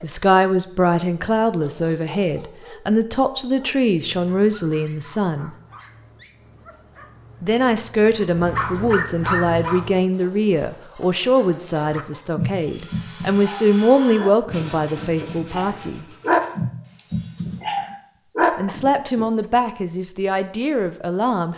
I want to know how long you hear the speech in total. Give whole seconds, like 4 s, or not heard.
17 s.